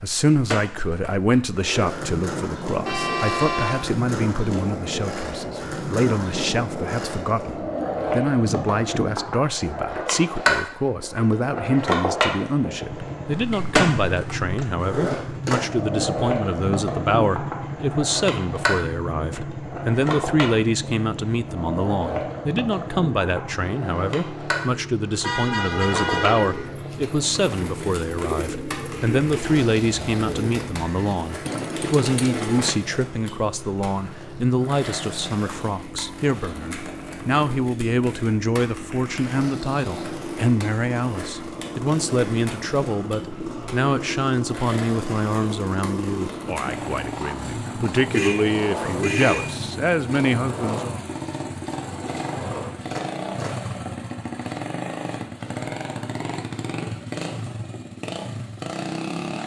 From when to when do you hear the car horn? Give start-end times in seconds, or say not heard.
2.9-3.8, 25.2-26.7, 48.1-49.4.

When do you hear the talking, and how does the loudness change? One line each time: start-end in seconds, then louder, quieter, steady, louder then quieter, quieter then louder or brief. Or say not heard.
0.0-51.0 steady.